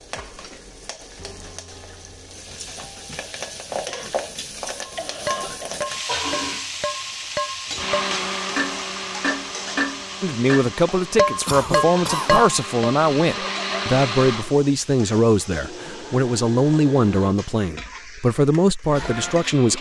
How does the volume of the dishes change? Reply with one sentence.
The volume of the dishes goes up.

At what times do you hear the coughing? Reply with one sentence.
The coughing can be heard from 3.9 to 5.8 s and from 11.4 to 12.5 s.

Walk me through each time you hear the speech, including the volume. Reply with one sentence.
The speech can be heard from 10.2 to 19.7 s, at a steady volume.